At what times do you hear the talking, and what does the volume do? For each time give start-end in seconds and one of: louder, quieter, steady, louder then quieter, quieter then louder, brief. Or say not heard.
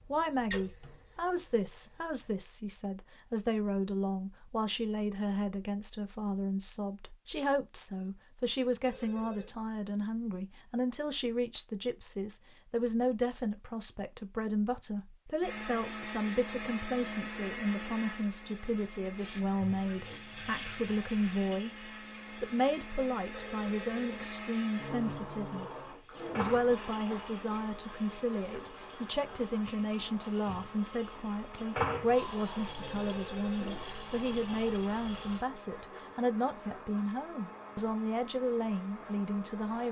0.1-39.8 steady.